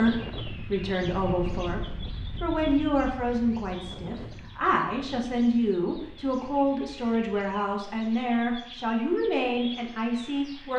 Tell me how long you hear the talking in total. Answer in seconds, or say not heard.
11 s.